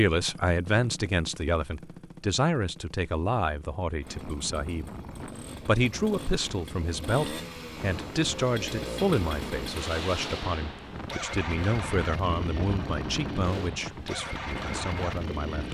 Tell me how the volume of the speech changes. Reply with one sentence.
The volume of the speech goes down.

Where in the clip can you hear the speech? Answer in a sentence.
You can hear the speech from 0.0 to 4.9 s and from 5.7 to 15.6 s.